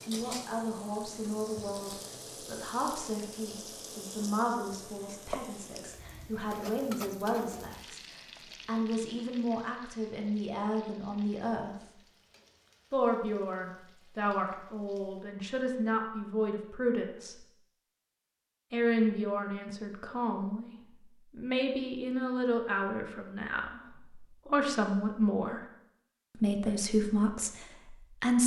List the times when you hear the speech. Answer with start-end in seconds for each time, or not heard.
0.0-11.9, 12.9-17.4, 18.7-25.6, 26.4-28.4.